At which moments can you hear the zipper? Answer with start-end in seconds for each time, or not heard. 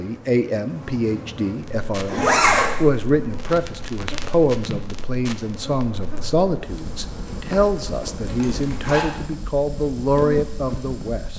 2.0-2.7, 7.2-9.2.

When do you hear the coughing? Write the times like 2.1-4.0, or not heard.
not heard.